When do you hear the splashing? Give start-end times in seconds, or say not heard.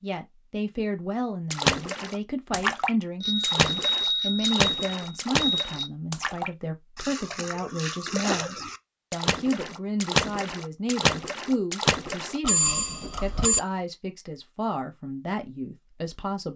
1.5-12.4.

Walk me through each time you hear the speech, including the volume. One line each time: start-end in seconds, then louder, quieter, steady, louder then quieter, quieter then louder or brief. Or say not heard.
0.0-16.5 steady.